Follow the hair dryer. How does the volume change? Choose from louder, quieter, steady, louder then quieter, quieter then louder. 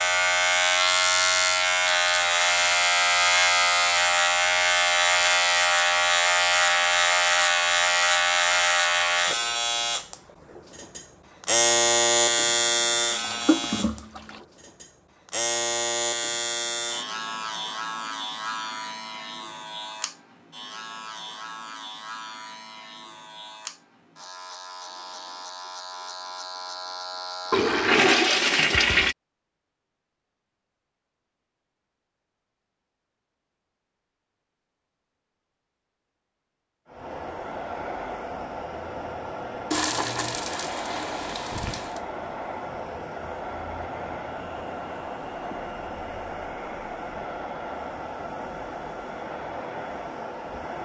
steady.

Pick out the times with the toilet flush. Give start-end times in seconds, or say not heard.
13.1-14.4, 27.5-29.1, 39.7-42.0.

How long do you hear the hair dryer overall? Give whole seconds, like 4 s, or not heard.
14 s.